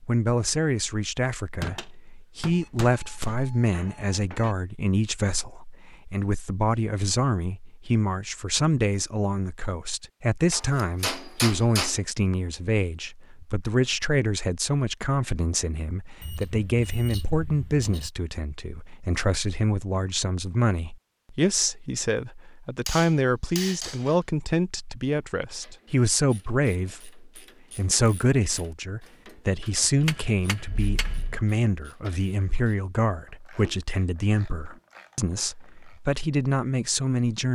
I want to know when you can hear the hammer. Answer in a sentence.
You can hear the hammer from 1.6 to 3.5 s, from 10.5 to 11.9 s, from 22.9 to 24.1 s and from 29.9 to 31.2 s.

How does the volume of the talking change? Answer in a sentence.
The volume of the talking stays about the same.